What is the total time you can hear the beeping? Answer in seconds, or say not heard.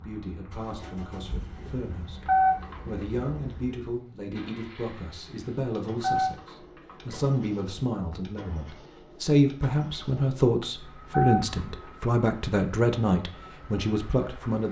3 s.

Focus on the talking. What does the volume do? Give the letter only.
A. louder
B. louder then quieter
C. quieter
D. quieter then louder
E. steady
A.